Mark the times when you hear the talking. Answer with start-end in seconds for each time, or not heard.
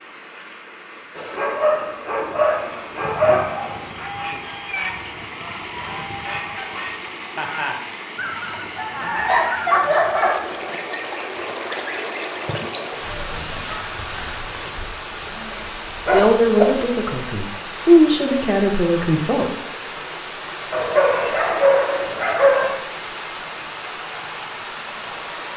16.0-19.5.